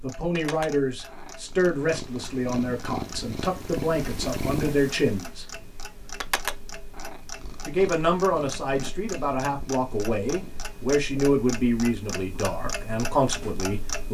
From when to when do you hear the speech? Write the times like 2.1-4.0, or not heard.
0.0-5.5, 7.7-14.0.